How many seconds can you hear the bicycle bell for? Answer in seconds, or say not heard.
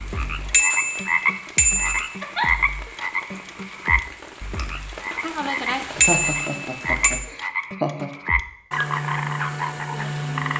3 s.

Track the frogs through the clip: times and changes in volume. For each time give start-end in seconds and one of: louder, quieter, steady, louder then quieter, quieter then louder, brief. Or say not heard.
0.0-10.5 quieter then louder.